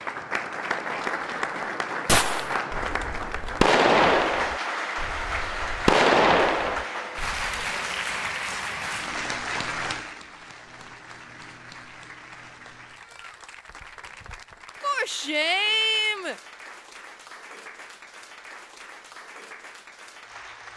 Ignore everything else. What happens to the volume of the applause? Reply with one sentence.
The loudness of the applause goes down.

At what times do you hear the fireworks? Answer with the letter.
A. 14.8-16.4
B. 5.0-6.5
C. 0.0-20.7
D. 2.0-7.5
D.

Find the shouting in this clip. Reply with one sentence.
You can hear the shouting from 14.8 to 16.4 s.